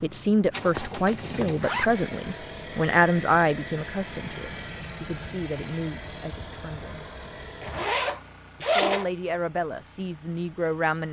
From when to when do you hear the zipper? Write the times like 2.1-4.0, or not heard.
0.7-1.9, 7.6-9.1.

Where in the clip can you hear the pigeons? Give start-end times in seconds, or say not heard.
not heard.